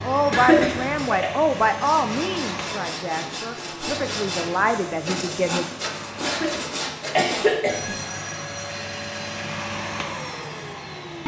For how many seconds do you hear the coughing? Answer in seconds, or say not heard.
3 s.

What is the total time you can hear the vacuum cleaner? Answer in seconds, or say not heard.
11 s.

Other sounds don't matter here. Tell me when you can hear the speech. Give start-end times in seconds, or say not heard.
0.0-5.7.